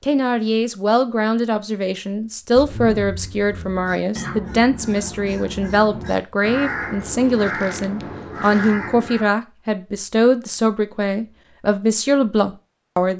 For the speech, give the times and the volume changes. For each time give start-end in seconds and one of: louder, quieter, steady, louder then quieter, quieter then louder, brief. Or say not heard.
0.0-13.1 steady.